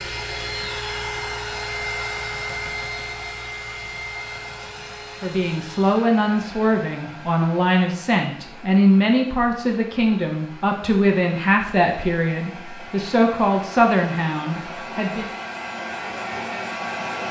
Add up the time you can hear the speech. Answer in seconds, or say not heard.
10 s.